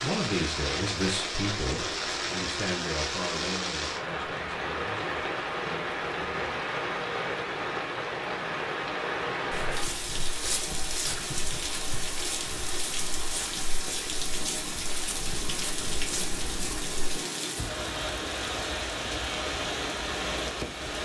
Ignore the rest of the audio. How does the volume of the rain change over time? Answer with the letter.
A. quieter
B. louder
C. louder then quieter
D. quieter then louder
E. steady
E.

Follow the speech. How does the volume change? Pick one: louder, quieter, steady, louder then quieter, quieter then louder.
quieter.